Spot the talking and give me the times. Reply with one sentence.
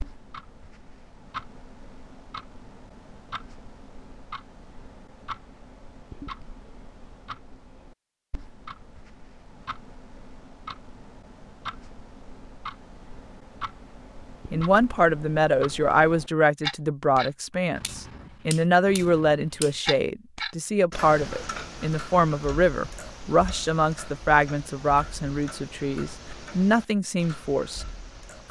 You can hear the talking from 14.5 to 27.9 s.